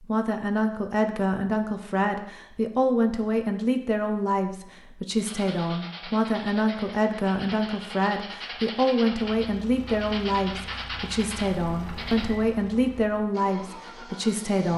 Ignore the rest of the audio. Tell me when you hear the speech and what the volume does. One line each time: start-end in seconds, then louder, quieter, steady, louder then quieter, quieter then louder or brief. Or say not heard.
0.0-14.7 steady.